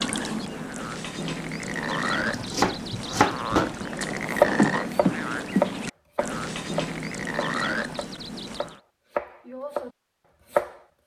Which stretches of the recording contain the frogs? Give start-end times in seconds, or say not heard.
0.0-8.8.